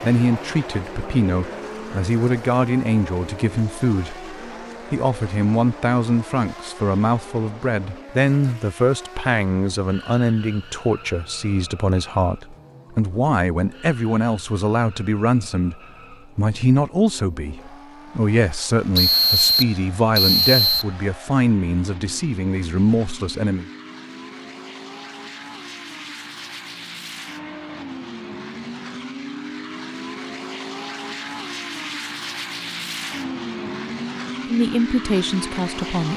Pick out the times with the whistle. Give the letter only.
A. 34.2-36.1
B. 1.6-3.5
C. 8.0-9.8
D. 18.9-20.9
D.